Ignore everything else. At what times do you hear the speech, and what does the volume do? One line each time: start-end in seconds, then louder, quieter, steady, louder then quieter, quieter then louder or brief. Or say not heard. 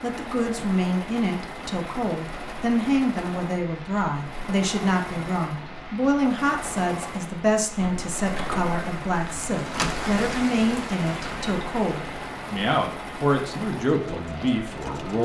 0.0-15.2 steady.